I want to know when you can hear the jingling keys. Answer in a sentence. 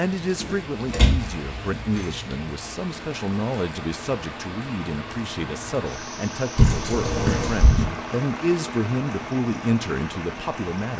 You can hear the jingling keys from 0.4 to 2.4 s and from 6.5 to 7.8 s.